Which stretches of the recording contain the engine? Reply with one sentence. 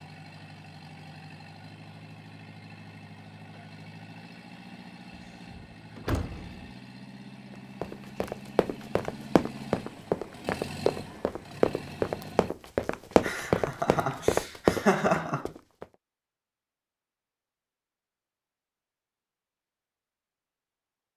You can hear the engine from 0.0 to 12.6 s.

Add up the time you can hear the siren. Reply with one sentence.
The siren can't be heard in this clip.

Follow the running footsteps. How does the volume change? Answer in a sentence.
The loudness of the running footsteps goes up.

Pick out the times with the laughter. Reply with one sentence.
The laughter can be heard from 13.2 to 15.5 s.